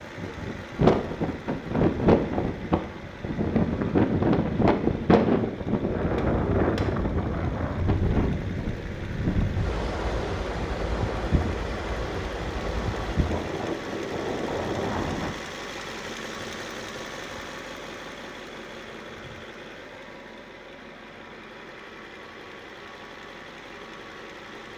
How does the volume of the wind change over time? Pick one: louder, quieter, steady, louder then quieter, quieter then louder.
quieter.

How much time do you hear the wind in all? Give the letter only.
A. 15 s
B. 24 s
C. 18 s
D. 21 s
A.